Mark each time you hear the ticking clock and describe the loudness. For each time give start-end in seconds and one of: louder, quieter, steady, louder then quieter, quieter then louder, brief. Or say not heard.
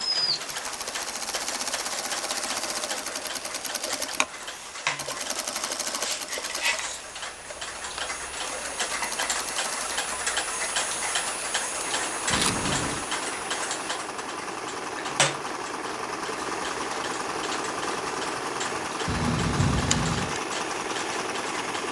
0.0-21.8 louder then quieter.